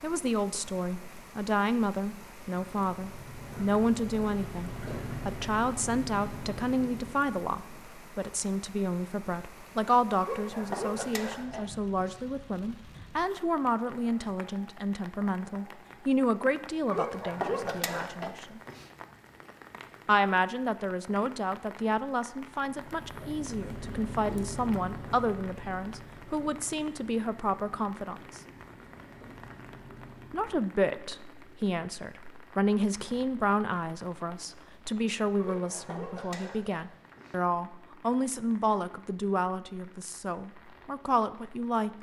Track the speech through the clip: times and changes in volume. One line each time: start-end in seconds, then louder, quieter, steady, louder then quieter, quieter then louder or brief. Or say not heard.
0.0-18.6 steady
20.1-28.4 steady
30.3-41.9 steady.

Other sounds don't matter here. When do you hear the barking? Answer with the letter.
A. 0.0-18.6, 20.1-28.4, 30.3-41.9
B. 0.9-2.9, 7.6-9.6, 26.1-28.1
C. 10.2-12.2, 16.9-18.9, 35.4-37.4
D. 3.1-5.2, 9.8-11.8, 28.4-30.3
C.